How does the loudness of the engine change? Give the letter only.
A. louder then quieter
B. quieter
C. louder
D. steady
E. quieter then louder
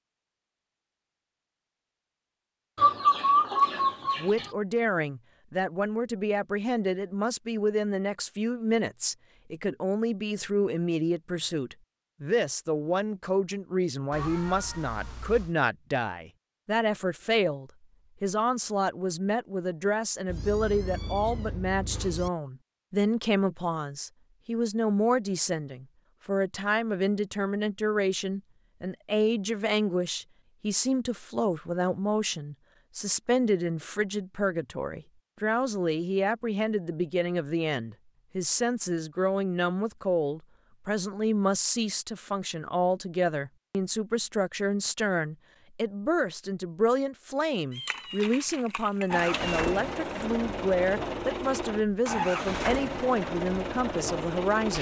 D.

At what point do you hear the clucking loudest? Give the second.
3 s.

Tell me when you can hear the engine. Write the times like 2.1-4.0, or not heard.
49.1-54.7.